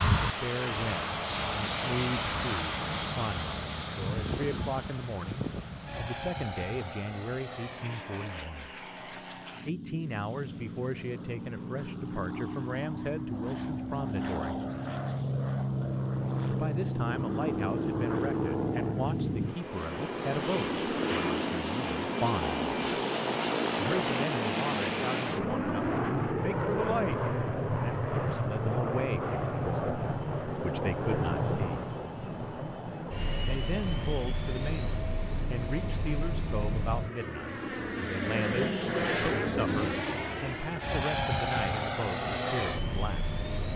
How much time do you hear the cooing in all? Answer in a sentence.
The cooing can't be heard in this clip.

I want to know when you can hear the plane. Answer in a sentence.
You can hear the plane from 0.0 to 43.7 s.